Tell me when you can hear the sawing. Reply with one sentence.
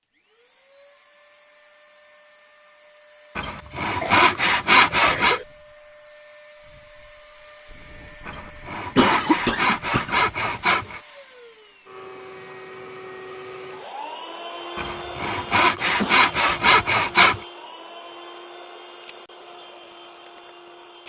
You can hear the sawing from 3.4 to 5.4 s, from 8.2 to 11.0 s and from 14.8 to 17.4 s.